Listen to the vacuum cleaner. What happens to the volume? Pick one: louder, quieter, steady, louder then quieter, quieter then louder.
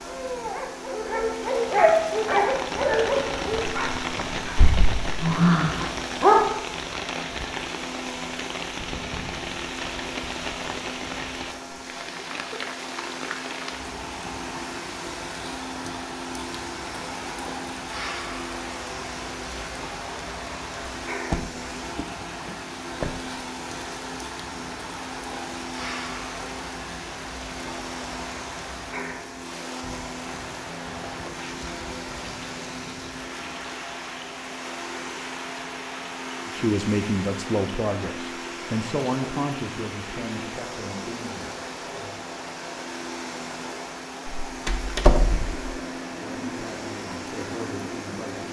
steady.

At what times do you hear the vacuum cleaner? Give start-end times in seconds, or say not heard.
0.0-48.4.